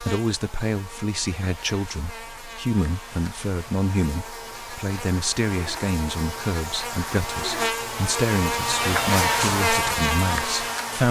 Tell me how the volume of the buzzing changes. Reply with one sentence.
The volume of the buzzing goes up.